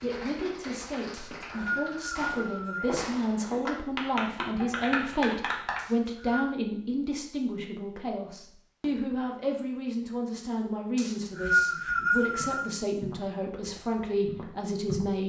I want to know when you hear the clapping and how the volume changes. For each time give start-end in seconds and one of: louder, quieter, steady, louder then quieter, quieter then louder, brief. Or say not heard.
0.0-5.8 louder.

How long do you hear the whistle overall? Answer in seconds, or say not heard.
4 s.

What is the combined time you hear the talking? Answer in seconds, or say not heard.
15 s.